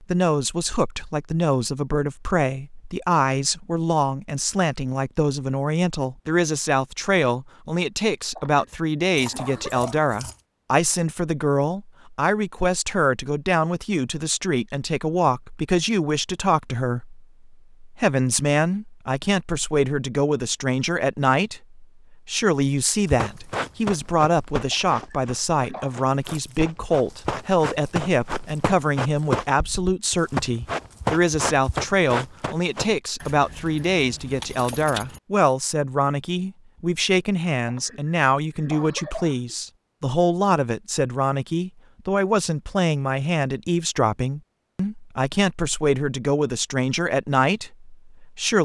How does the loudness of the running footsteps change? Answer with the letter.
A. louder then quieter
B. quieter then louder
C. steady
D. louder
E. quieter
B.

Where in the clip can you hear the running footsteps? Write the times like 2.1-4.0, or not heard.
23.1-33.0.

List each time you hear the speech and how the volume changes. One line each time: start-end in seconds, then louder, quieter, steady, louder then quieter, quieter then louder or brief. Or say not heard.
0.0-48.6 steady.